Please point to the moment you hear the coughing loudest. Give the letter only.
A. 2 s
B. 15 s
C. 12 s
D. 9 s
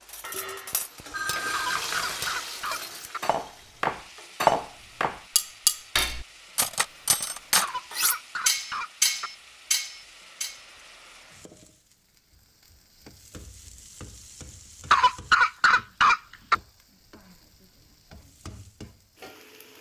B.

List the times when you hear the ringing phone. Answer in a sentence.
The ringing phone can be heard from 1.1 to 1.9 s.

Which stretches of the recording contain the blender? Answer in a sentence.
You can't hear the blender here.